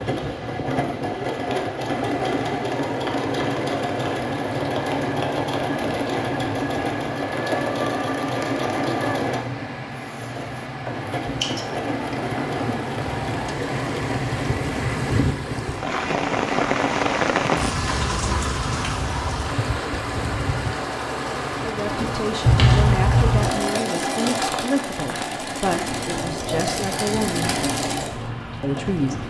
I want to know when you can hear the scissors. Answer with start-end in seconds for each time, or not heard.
11.4-12.8, 22.4-23.5.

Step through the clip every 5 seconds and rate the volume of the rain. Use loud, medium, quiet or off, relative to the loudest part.
medium, medium, medium, loud, medium, medium.